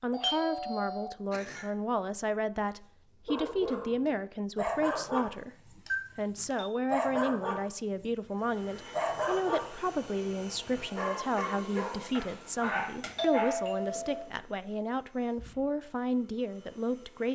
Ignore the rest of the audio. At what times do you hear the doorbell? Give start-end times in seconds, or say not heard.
0.1-1.7, 5.8-6.8, 13.2-14.2.